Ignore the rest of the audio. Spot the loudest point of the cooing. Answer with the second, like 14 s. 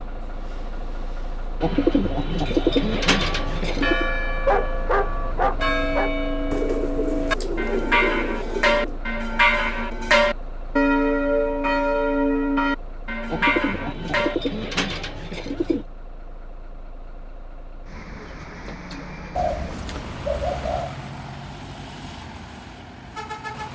3 s.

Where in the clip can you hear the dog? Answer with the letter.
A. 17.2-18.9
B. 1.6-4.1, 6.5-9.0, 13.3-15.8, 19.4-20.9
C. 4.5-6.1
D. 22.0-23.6
C.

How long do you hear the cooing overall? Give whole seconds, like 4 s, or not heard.
9 s.